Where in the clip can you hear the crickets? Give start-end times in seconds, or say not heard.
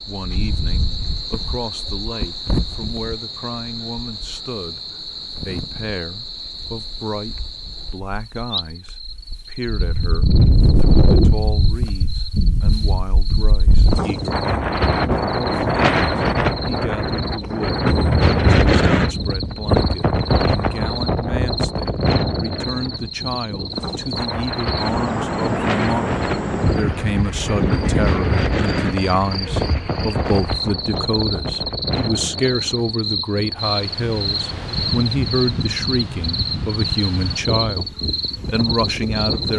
0.0-39.5.